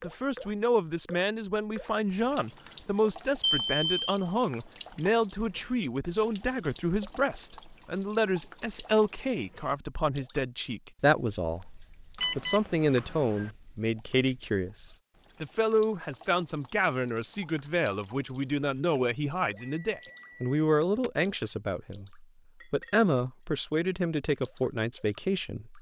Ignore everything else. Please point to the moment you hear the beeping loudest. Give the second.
4 s.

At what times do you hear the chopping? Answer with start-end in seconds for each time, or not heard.
not heard.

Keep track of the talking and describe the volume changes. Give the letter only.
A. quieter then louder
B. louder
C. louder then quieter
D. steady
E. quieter
D.